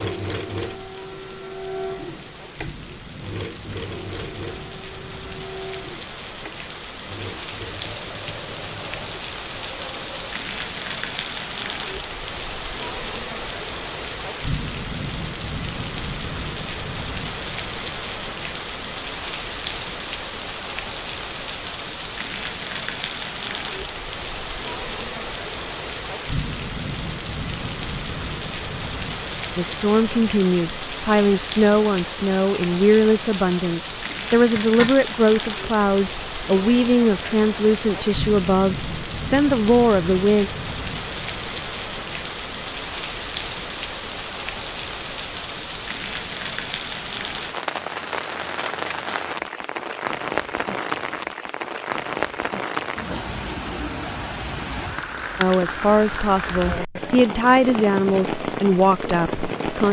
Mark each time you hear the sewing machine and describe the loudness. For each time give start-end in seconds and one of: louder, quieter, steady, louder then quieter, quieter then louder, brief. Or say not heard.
0.0-10.2 quieter.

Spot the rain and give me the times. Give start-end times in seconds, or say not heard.
0.2-59.8.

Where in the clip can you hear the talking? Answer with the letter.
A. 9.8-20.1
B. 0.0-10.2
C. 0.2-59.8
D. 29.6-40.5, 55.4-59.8
D.